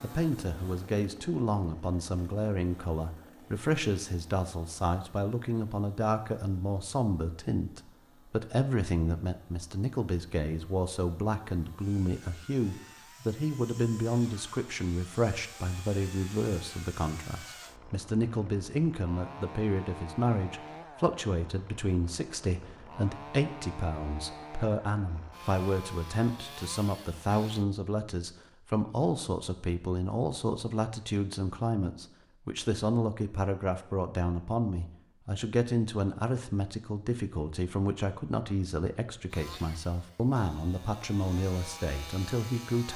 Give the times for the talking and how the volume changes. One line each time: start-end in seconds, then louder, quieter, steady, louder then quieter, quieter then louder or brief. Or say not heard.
0.0-42.9 steady.